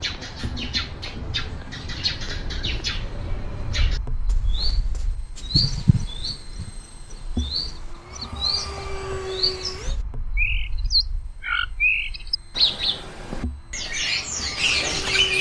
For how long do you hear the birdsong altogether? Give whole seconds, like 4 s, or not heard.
15 s.